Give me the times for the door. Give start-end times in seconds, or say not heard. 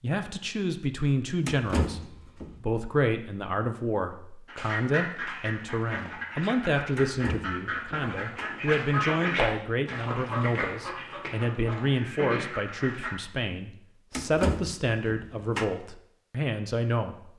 1.4-2.5, 7.0-8.5, 14.1-15.7.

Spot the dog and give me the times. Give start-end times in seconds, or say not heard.
not heard.